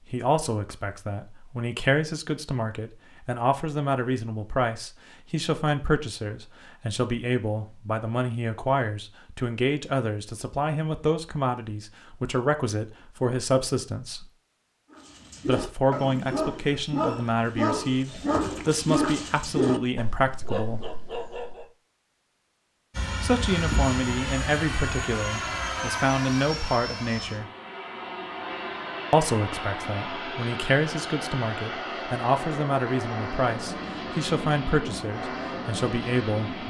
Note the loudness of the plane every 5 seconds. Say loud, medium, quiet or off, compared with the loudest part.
off, off, off, off, loud, loud, loud, loud.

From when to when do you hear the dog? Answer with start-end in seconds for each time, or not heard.
14.9-21.6.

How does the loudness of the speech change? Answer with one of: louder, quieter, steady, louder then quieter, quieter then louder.
steady.